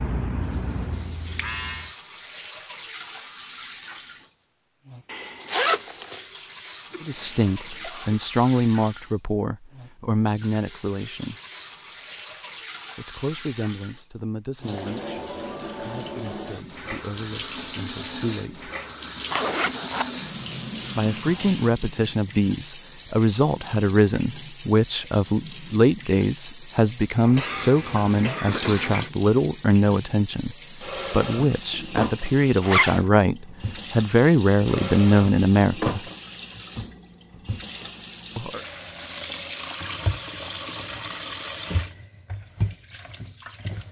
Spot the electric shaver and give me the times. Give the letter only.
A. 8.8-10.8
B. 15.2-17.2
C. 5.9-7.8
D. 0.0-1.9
D.